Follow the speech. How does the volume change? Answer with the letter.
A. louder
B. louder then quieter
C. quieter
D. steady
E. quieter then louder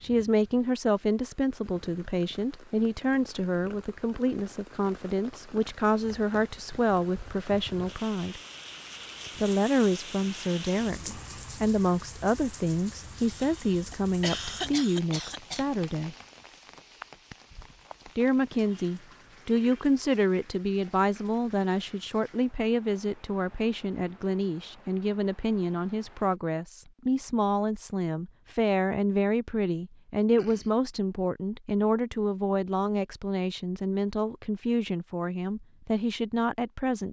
D.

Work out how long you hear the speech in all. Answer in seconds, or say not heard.
34 s.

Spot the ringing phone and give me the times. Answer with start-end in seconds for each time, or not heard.
not heard.